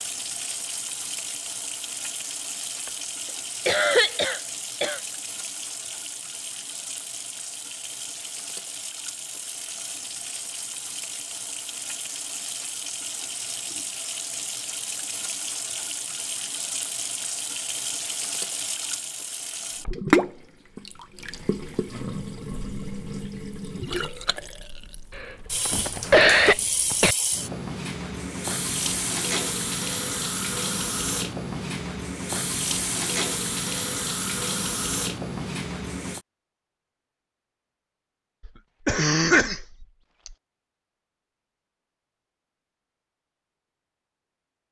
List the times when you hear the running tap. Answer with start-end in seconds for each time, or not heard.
0.0-36.2.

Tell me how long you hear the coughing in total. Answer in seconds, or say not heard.
5 s.